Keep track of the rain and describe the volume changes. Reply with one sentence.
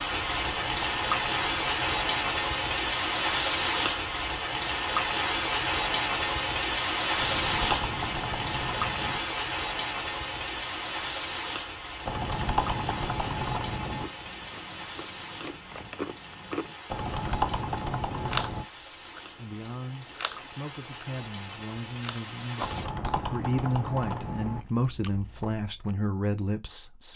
The volume of the rain goes down.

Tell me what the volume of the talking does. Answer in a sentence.
The loudness of the talking goes up.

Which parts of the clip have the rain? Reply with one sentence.
The rain can be heard from 0.0 to 22.9 s.